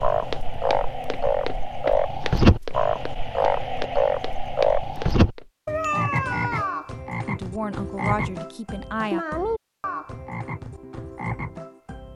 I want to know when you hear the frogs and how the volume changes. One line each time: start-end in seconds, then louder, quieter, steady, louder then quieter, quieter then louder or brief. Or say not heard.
0.0-12.1 quieter.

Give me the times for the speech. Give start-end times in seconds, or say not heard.
7.2-9.2.